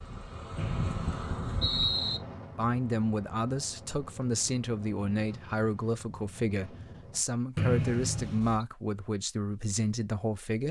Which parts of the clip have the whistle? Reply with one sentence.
The whistle can be heard from 0.6 to 2.2 s and from 7.5 to 8.7 s.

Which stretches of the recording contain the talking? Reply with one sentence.
The talking can be heard from 2.5 to 10.6 s.